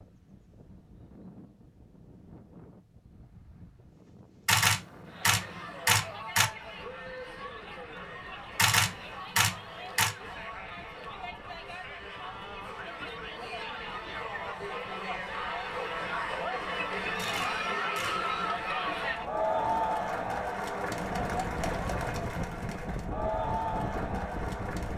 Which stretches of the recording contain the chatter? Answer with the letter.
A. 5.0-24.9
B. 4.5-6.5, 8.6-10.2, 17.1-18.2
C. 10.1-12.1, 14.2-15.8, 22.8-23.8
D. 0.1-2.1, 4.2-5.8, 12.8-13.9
A.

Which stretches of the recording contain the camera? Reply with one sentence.
You can hear the camera from 4.5 to 6.5 s, from 8.6 to 10.2 s and from 17.1 to 18.2 s.